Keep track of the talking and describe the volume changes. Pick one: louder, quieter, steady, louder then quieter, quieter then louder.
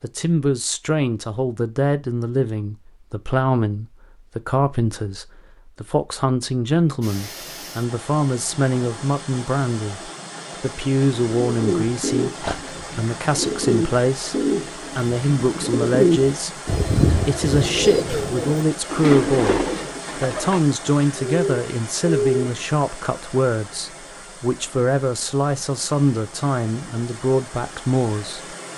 steady.